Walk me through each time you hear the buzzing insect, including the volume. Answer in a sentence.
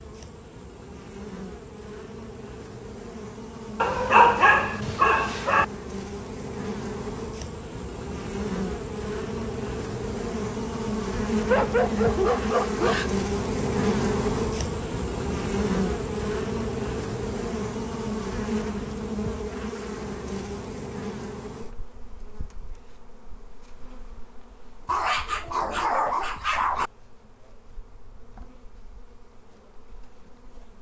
You can hear the buzzing insect from 0.0 to 30.7 s, getting louder then quieter.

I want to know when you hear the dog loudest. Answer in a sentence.
The loudest moment of the dog is at 4 seconds.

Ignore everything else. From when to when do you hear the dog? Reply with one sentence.
The dog can be heard from 3.8 to 5.7 s, from 11.4 to 13.2 s and from 24.9 to 26.9 s.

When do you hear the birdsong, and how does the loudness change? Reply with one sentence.
You can't hear the birdsong here.